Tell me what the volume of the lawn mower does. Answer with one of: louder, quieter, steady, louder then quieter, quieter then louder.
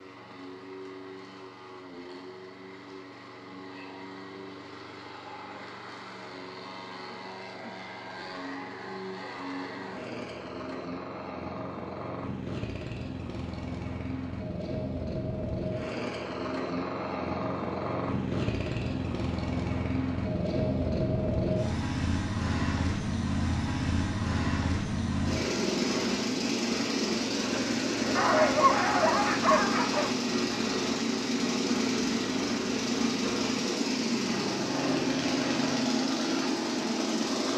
louder.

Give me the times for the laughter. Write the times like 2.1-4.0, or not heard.
not heard.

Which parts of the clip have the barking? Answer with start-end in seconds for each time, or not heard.
28.1-30.1.